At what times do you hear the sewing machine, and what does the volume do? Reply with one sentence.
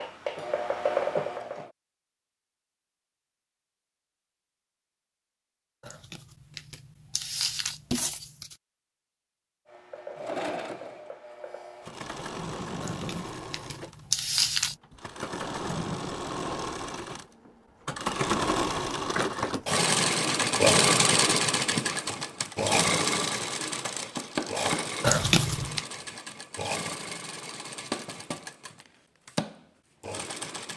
You can hear the sewing machine briefly from 0.0 to 1.7 s; and from 9.7 to 30.7 s, getting louder then quieter.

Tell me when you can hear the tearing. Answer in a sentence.
You can hear the tearing from 5.8 to 8.6 s, from 12.8 to 14.8 s and from 25.0 to 25.9 s.